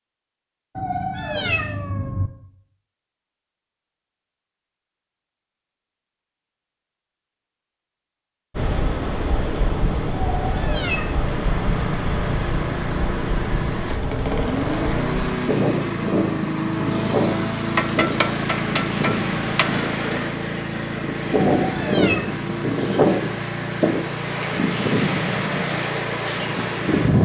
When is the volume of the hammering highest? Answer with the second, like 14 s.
18 s.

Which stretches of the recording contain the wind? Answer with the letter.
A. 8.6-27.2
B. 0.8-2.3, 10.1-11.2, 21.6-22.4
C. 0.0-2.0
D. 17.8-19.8
A.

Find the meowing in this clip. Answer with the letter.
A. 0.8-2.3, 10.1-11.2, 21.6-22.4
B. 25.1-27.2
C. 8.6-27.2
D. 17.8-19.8
A.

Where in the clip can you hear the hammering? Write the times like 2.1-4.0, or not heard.
17.8-19.8.